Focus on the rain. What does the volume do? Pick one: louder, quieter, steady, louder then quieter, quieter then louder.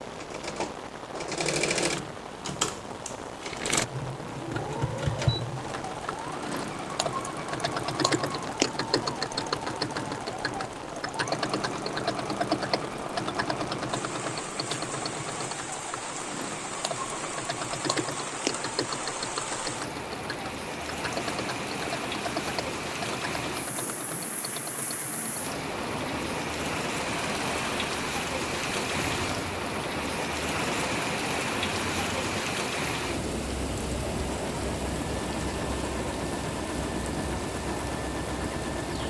louder.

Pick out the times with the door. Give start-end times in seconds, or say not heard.
not heard.